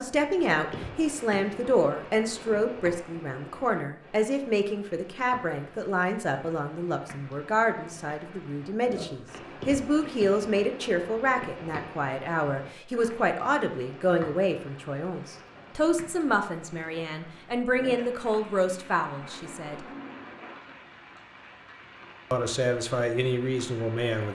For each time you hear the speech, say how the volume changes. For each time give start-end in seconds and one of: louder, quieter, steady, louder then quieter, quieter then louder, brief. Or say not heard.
0.0-19.8 steady
22.3-24.3 brief.